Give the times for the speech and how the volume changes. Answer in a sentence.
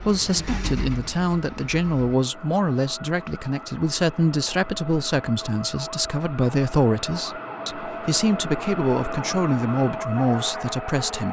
The speech can be heard from 0.0 to 11.2 s, at a steady volume.